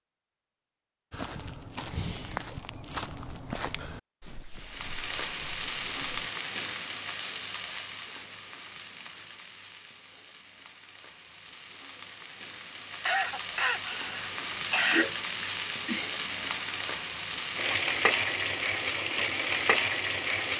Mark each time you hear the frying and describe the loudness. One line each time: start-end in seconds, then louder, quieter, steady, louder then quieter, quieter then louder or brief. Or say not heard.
4.6-20.5 quieter then louder.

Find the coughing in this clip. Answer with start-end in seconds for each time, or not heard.
13.1-15.1.